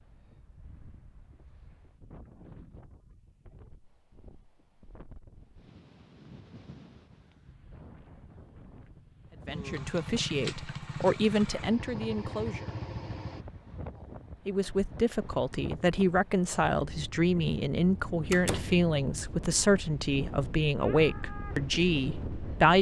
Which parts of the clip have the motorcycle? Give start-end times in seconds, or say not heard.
9.4-13.4.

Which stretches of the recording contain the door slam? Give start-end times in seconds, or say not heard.
18.3-18.8.